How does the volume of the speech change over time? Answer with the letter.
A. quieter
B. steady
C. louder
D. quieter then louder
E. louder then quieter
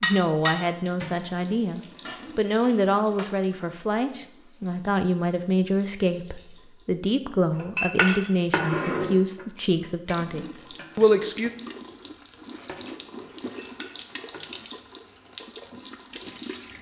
B.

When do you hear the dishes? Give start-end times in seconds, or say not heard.
0.0-3.2, 7.5-11.9, 12.6-14.6.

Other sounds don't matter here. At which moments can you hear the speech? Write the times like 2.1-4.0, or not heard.
0.0-11.5.